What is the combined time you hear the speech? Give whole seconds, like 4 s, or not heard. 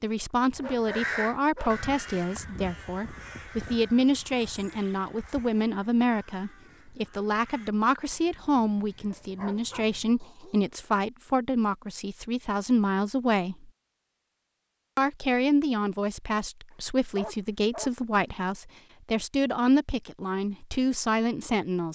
21 s.